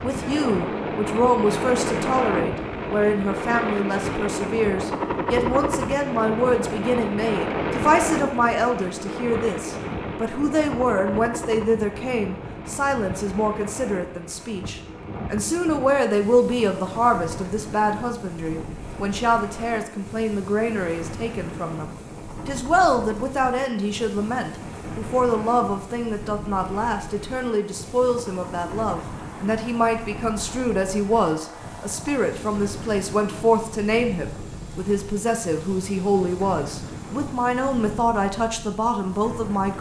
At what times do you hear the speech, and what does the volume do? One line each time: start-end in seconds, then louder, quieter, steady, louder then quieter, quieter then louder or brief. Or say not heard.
0.0-39.7 steady.